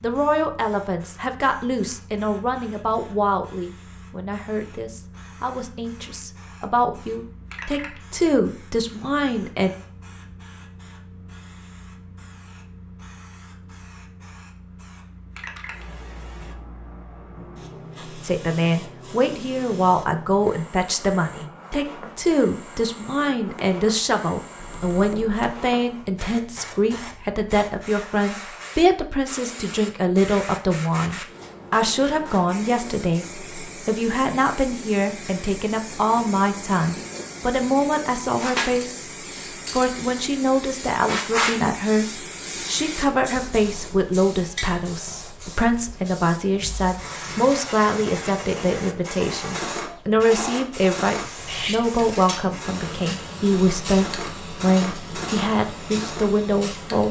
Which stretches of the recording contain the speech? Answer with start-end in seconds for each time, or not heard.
0.0-9.7, 18.2-39.1, 39.7-57.0.